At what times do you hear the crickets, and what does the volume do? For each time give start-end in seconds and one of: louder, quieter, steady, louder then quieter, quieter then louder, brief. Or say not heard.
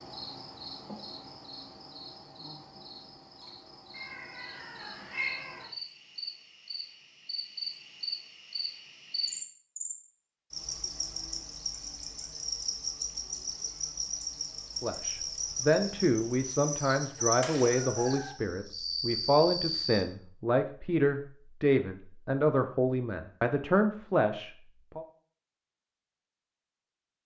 0.0-20.1 louder.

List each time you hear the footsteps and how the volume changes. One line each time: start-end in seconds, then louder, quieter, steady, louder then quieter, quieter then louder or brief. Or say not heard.
not heard.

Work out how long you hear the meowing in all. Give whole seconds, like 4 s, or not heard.
2 s.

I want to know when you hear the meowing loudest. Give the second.
5 s.